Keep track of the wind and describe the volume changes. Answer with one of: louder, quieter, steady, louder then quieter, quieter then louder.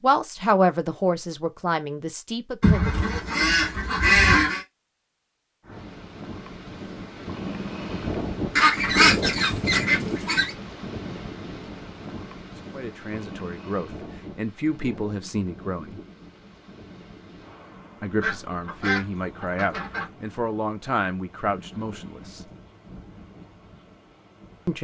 quieter.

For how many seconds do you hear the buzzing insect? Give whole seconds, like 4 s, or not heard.
not heard.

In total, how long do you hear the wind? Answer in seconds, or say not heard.
19 s.